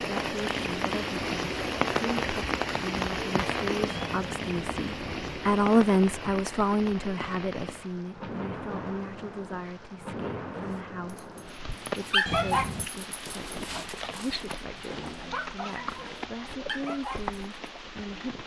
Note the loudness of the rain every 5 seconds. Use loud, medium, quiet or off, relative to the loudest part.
loud, medium, medium, medium.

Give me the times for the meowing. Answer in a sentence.
You can hear the meowing from 3.9 to 5.5 s and from 12.2 to 12.9 s.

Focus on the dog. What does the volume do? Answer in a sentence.
The loudness of the dog goes down.